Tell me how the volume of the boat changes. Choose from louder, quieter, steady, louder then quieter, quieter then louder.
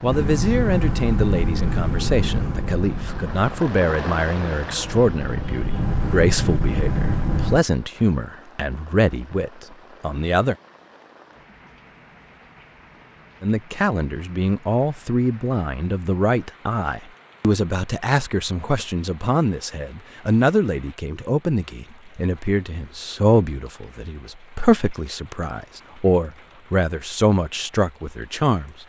quieter then louder.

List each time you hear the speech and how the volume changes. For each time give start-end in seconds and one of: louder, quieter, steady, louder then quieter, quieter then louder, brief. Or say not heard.
0.0-10.6 steady
13.4-28.8 steady.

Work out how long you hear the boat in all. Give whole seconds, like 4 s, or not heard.
8 s.